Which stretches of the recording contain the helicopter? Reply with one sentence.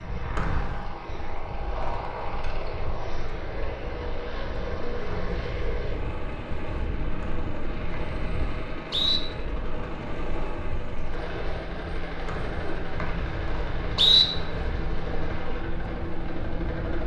The helicopter can be heard from 0.0 to 17.0 s.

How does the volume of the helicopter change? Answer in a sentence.
The loudness of the helicopter stays about the same.